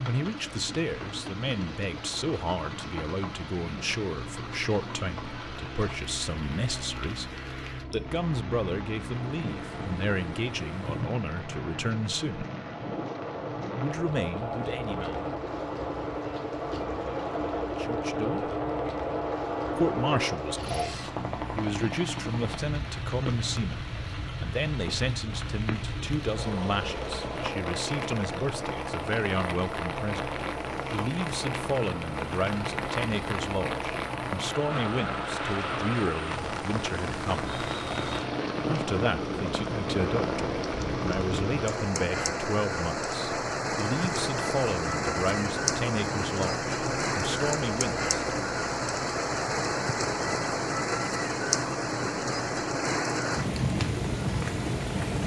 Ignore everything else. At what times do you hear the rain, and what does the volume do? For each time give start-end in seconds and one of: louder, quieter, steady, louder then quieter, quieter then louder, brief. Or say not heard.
0.0-55.2 louder.